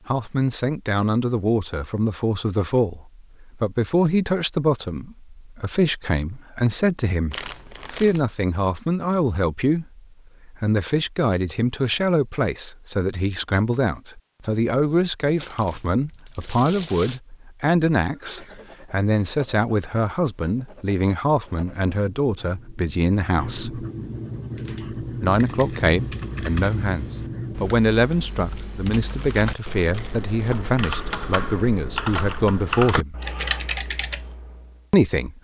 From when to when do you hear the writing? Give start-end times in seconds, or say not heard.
18.2-27.7.